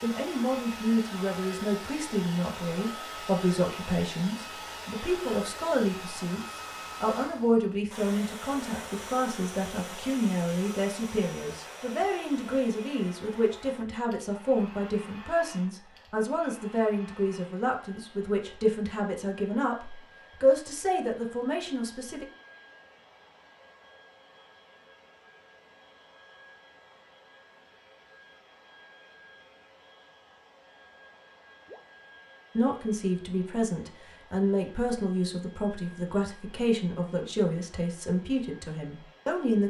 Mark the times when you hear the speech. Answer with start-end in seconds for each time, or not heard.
0.0-22.2, 32.5-39.6.